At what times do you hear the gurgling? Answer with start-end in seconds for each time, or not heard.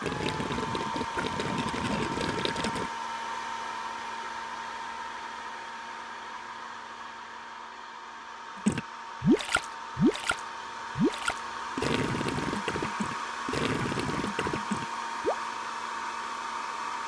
0.0-2.9, 8.7-15.4.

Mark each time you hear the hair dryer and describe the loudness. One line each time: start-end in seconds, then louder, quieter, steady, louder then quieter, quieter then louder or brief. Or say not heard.
0.0-17.0 quieter then louder.